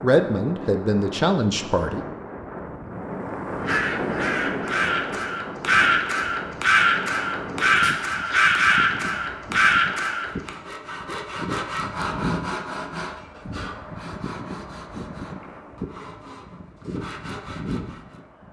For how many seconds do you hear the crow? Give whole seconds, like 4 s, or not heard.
7 s.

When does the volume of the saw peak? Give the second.
12 s.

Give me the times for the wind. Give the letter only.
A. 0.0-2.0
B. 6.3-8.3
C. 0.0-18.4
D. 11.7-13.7
C.